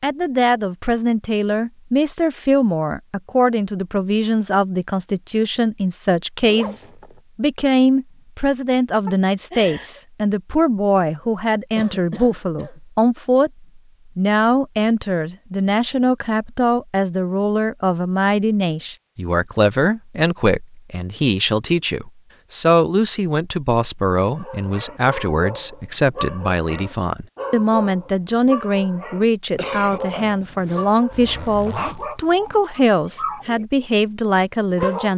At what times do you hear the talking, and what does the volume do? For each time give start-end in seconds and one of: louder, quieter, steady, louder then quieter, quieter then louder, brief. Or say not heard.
0.0-35.1 steady.